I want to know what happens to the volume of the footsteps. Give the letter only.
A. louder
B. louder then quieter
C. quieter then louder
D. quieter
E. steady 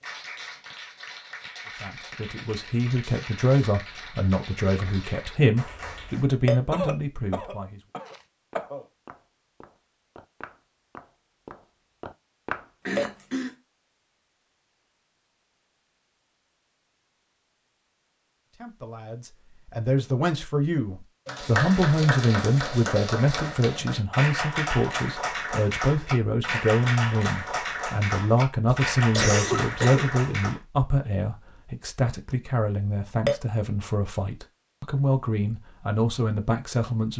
C.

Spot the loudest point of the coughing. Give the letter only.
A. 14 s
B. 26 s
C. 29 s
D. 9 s
C.